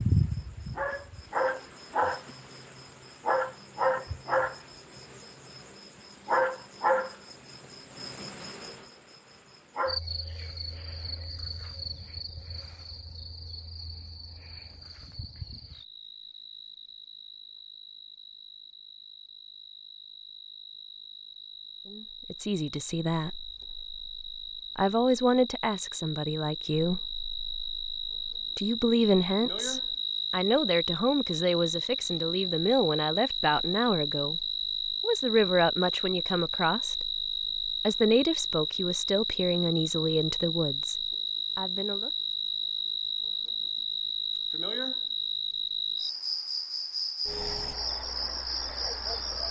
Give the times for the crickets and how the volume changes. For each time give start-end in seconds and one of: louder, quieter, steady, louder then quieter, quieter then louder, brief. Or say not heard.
0.0-49.4 quieter then louder.